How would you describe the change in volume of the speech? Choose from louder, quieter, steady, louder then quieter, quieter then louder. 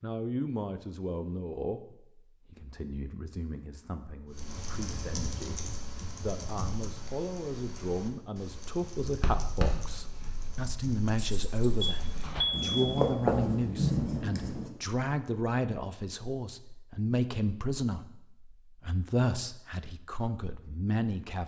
louder.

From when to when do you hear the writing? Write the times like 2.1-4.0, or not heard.
9.0-14.7.